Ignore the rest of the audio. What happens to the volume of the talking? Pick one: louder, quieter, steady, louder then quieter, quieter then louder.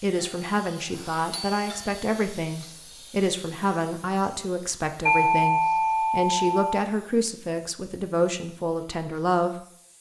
steady.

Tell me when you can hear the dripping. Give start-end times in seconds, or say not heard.
not heard.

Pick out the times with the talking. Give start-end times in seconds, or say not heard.
0.0-9.9.